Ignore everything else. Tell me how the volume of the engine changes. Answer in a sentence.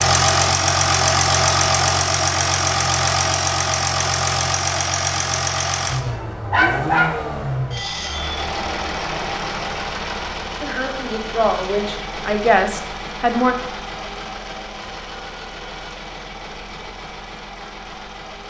The volume of the engine goes down.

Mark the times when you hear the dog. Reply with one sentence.
You can hear the dog from 6.0 to 7.2 s.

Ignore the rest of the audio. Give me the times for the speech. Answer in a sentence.
You can hear the speech from 10.6 to 13.6 s.